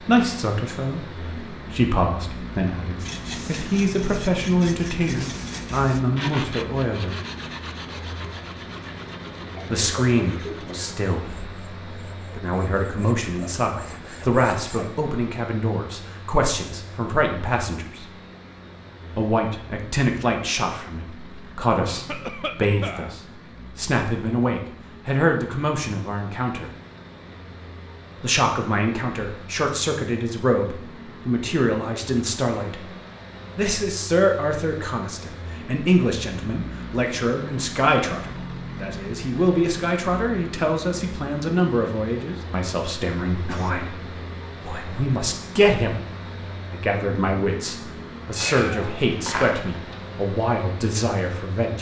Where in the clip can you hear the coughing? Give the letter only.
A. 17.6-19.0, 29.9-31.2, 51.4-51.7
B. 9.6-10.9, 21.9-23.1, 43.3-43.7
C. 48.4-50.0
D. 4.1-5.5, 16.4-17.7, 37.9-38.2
B.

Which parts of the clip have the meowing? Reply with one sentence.
You can hear the meowing from 48.4 to 50.0 s.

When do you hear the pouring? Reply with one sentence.
The pouring can't be heard in this clip.